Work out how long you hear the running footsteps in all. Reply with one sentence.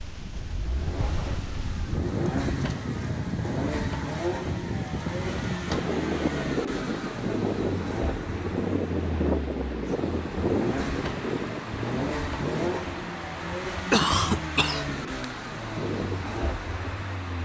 The running footsteps can't be heard in this clip.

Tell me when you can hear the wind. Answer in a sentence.
You can hear the wind from 0.0 to 17.3 s.